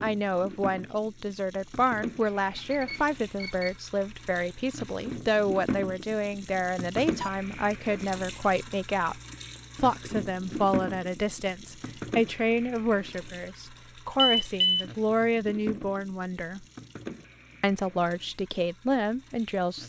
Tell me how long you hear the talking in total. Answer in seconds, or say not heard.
18 s.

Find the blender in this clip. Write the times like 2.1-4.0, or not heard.
not heard.